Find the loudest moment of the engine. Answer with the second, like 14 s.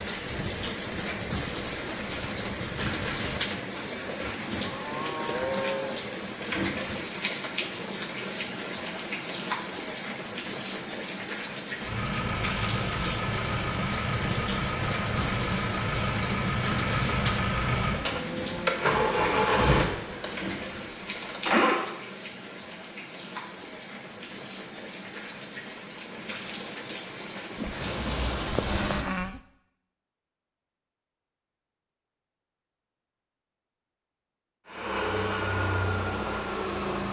19 s.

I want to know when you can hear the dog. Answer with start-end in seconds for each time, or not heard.
not heard.